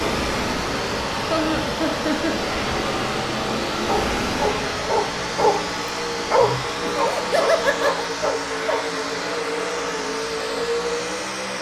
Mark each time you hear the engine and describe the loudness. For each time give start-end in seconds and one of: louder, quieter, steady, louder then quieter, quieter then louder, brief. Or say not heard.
0.0-11.5 steady.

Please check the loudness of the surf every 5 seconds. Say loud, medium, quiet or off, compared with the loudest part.
loud, medium, off.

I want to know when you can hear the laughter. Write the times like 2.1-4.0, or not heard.
1.3-2.4, 6.8-8.1.